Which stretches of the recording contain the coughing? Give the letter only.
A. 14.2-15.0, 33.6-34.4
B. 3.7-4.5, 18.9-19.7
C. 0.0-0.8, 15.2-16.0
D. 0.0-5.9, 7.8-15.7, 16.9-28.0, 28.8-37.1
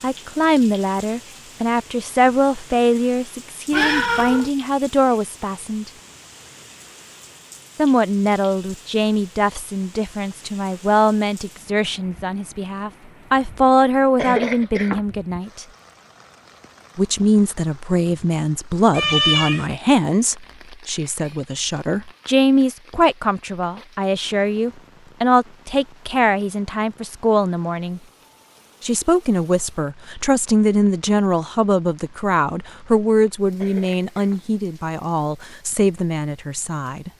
A.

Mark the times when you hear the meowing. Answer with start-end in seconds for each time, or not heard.
3.7-4.5, 18.9-19.7.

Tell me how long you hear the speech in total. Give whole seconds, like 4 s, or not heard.
33 s.